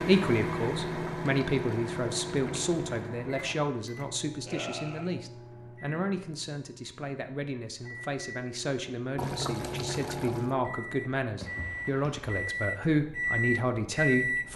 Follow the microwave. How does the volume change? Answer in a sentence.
The loudness of the microwave goes down, then up.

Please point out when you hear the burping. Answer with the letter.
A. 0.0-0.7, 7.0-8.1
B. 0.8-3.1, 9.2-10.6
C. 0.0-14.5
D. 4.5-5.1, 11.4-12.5
D.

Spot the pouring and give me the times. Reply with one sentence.
You can hear the pouring from 0.8 to 3.1 s and from 9.2 to 10.6 s.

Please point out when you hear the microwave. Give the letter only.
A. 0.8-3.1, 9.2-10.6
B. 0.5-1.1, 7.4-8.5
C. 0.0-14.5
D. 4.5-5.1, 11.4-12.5
C.